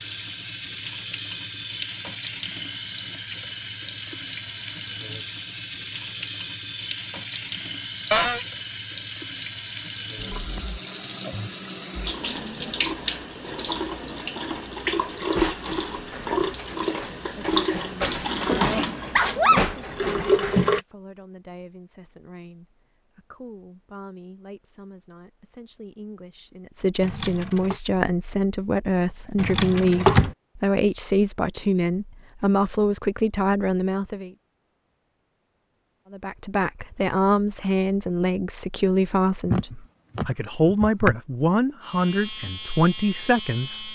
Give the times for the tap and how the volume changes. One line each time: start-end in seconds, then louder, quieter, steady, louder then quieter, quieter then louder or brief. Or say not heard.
0.0-20.8 steady.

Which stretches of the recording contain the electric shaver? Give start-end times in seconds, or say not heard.
41.8-43.9.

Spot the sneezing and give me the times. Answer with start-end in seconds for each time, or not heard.
19.1-19.6, 39.5-41.1.